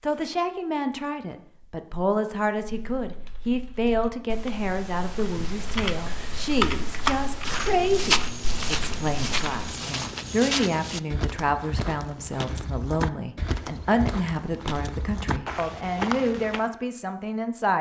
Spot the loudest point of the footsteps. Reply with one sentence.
The volume of the footsteps peaks at 8 seconds.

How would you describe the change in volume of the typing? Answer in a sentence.
The loudness of the typing goes up, then down.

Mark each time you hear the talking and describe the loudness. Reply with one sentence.
The talking can be heard from 0.0 to 17.7 s, at a steady volume.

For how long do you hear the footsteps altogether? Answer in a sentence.
You can hear the footsteps for 9 seconds altogether.